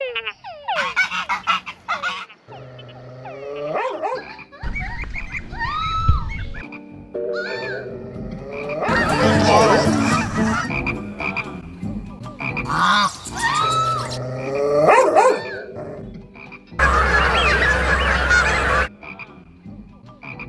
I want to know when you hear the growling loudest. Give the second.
15 s.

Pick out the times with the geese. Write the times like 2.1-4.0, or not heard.
0.8-2.2, 4.6-6.7, 8.8-10.7, 12.7-14.2, 16.8-18.9.